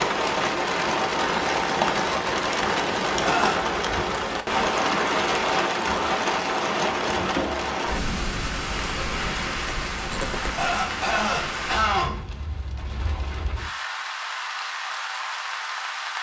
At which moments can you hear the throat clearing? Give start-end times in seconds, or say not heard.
3.1-3.6, 10.4-12.2.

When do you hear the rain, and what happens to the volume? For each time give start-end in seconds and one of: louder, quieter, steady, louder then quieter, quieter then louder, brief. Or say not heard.
0.0-16.1 quieter.